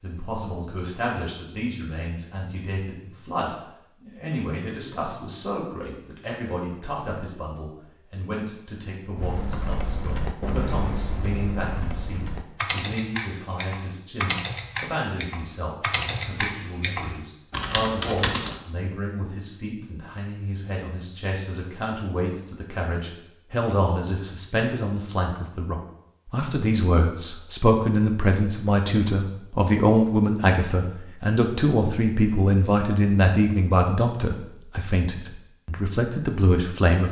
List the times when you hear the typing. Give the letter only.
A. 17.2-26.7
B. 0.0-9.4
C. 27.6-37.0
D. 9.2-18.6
D.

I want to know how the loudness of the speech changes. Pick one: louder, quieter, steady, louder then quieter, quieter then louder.
louder.